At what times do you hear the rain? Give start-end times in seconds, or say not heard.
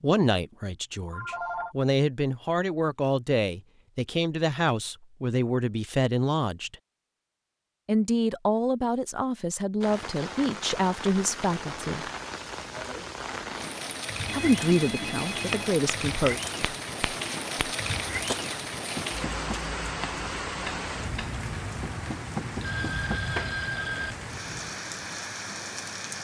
9.8-26.1.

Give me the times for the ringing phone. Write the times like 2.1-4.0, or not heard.
1.1-1.8, 14.2-15.8, 22.6-24.1.